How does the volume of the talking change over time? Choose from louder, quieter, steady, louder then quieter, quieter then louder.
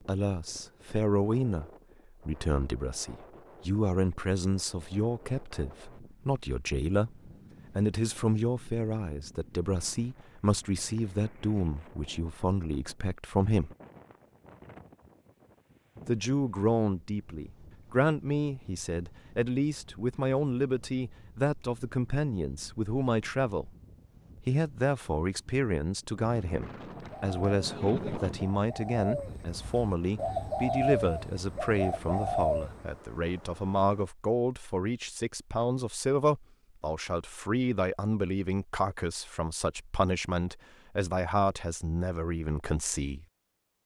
steady.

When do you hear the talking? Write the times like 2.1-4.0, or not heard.
0.1-13.8, 16.1-23.7, 24.4-43.2.